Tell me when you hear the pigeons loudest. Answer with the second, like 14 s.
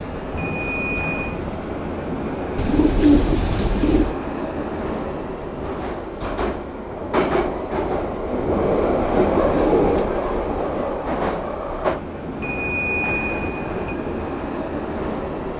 3 s.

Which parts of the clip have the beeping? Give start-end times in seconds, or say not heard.
0.3-1.4, 12.4-13.9.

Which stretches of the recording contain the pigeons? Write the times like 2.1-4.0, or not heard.
2.5-4.2, 8.2-10.1.